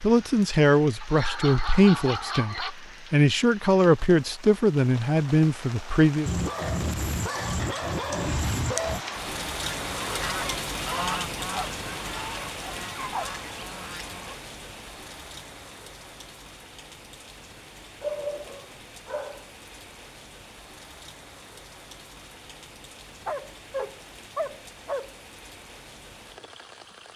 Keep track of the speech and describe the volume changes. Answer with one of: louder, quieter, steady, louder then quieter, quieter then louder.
steady.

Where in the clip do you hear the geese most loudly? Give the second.
11 s.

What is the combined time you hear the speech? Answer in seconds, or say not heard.
6 s.